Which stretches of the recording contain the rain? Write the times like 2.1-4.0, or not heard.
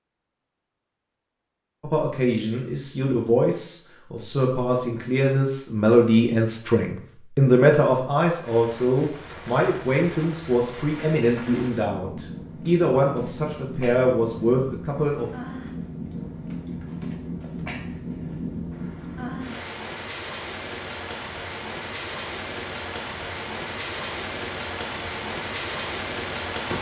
8.4-26.7.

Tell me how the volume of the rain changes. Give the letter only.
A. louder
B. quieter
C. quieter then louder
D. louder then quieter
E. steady
A.